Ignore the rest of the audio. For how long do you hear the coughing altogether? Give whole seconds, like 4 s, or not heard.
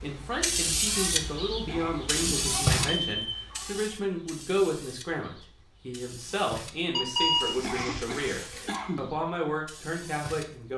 3 s.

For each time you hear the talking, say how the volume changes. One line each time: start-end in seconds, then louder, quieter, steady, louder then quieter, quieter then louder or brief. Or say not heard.
0.0-10.7 steady.